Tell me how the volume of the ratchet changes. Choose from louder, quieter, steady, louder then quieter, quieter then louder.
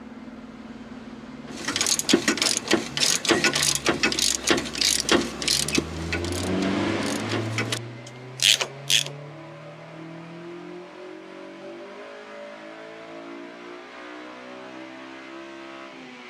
quieter then louder.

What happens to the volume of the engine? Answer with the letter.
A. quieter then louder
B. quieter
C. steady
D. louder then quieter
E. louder
D.